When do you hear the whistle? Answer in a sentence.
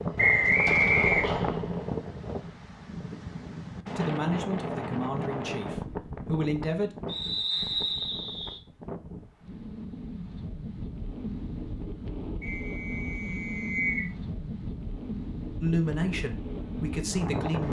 You can hear the whistle from 0.1 to 1.4 s, from 7.0 to 8.6 s and from 12.4 to 14.1 s.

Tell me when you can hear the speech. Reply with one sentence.
You can hear the speech from 4.0 to 6.9 s and from 15.6 to 17.6 s.